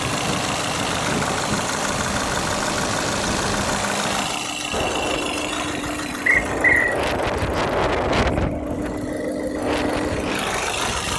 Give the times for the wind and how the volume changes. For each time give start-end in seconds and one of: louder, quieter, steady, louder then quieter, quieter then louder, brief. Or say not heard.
0.0-11.1 louder then quieter.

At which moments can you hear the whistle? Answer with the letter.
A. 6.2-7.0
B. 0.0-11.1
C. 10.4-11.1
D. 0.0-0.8
A.